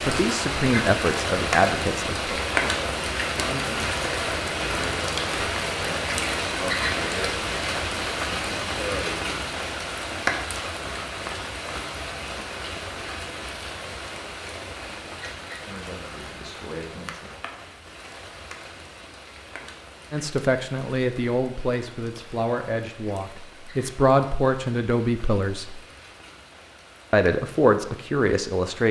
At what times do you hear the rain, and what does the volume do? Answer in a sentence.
You can hear the rain from 0.0 to 28.8 s, getting quieter.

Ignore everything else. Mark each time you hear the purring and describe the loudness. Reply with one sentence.
The purring can't be heard in this clip.